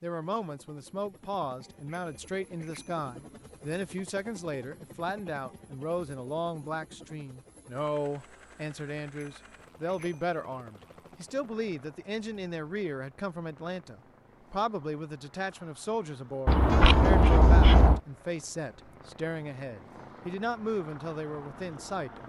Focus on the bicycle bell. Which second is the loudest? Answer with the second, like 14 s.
17 s.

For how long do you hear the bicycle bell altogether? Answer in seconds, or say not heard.
4 s.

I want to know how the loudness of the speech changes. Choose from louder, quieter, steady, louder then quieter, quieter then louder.
steady.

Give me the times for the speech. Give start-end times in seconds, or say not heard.
0.0-22.2.